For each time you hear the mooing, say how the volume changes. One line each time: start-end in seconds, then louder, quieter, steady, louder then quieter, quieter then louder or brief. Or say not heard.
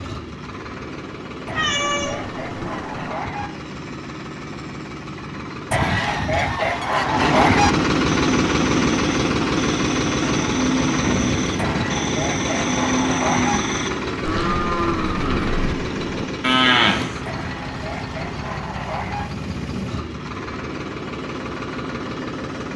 8.1-17.2 louder.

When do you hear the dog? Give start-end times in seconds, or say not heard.
not heard.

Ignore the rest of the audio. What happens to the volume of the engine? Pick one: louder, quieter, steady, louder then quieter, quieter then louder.
louder then quieter.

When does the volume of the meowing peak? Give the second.
2 s.